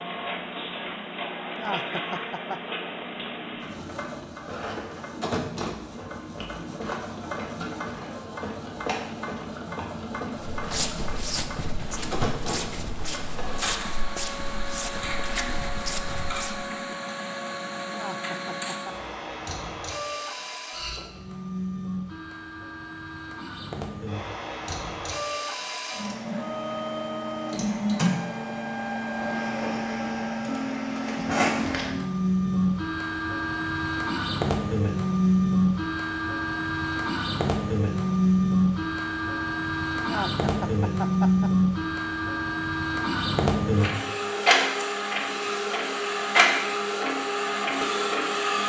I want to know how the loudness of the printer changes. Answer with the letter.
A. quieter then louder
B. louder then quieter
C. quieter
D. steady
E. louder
E.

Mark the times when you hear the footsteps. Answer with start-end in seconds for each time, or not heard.
10.4-16.6.